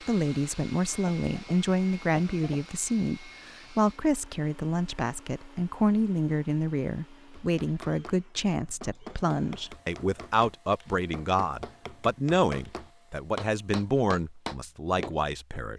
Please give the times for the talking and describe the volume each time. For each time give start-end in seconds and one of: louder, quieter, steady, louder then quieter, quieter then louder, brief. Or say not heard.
0.1-15.7 steady.